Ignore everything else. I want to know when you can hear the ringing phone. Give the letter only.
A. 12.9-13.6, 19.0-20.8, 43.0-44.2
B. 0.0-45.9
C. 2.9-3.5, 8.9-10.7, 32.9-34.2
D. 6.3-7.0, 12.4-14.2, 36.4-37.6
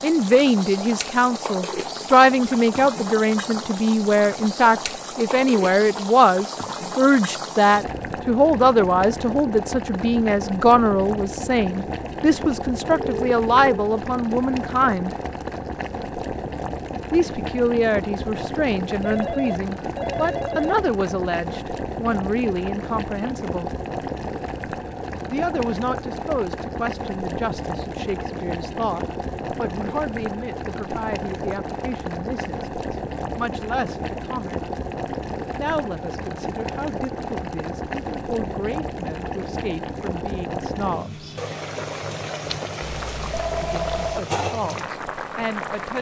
A.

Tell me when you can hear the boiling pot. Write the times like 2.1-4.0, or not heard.
0.0-45.9.